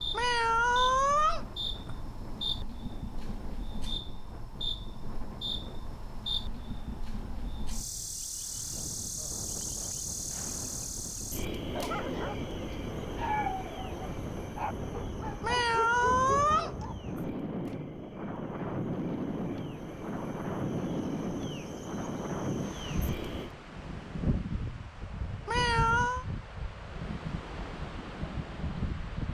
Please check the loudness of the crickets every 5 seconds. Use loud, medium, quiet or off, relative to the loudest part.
loud, loud, loud, medium, loud, off.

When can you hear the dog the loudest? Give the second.
13 s.